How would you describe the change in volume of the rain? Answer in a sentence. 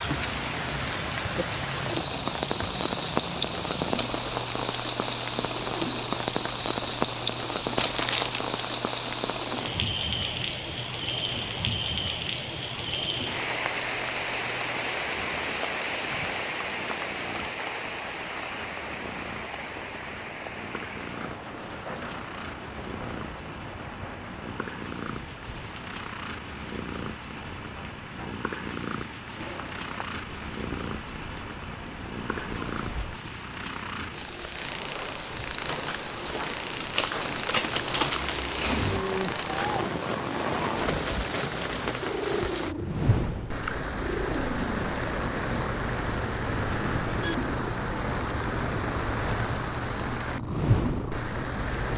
The volume of the rain goes down, then up.